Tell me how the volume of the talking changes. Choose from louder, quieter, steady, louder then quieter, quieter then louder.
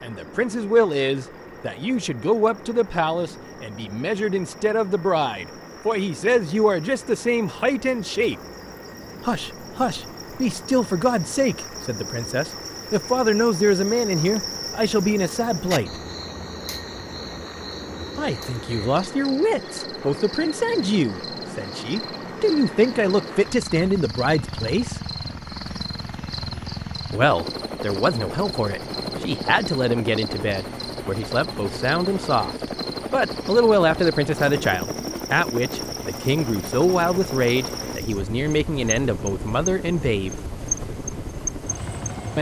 steady.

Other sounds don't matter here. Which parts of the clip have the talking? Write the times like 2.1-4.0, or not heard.
0.0-8.3, 9.2-15.9, 18.1-25.0, 27.1-40.4.